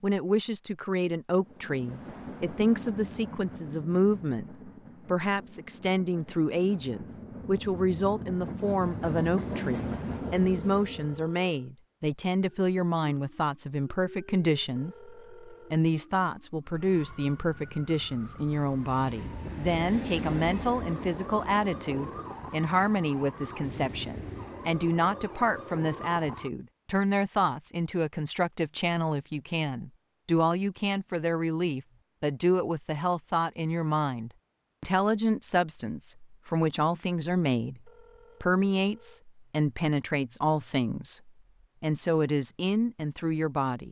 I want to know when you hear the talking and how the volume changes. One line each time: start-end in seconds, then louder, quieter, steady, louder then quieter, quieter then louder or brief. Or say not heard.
0.0-43.8 steady.